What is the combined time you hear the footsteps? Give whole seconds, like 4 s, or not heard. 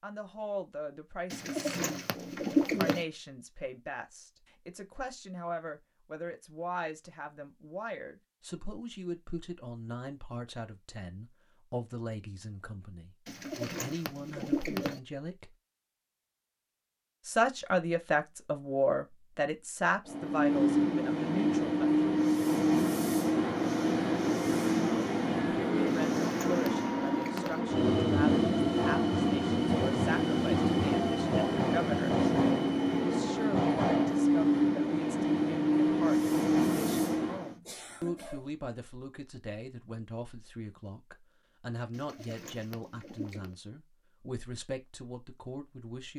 not heard.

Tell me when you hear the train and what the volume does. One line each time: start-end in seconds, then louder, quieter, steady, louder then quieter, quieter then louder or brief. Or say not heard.
20.1-37.5 steady.